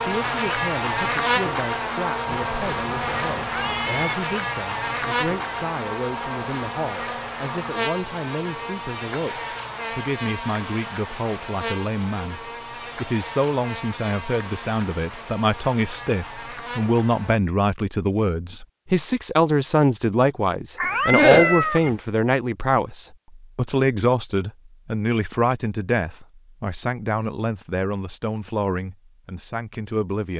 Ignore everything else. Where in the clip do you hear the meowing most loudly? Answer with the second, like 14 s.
21 s.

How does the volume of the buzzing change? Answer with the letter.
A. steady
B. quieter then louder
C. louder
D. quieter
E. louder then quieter
D.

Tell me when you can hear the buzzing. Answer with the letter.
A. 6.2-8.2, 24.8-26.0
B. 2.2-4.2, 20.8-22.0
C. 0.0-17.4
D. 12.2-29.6
C.